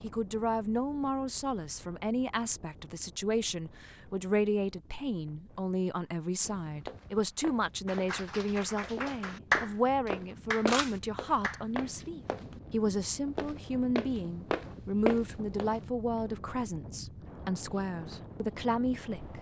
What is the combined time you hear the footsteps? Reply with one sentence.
The footsteps can be heard for 8 seconds in total.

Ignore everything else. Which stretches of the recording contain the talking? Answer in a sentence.
The talking can be heard from 0.0 to 19.3 s.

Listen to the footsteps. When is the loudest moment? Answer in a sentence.
The volume of the footsteps peaks at 15 seconds.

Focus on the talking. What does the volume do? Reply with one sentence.
The loudness of the talking stays about the same.